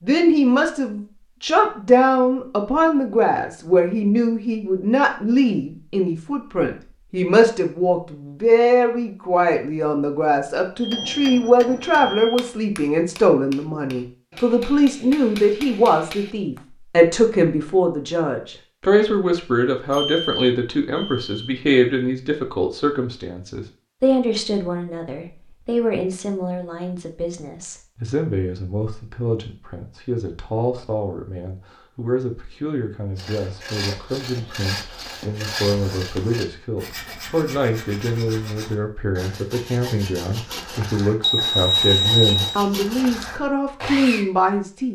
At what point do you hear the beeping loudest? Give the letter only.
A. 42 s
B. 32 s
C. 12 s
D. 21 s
A.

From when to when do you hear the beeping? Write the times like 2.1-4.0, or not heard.
10.8-12.5, 19.9-21.5, 41.2-42.6.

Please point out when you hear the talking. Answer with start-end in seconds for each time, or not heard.
0.0-44.8.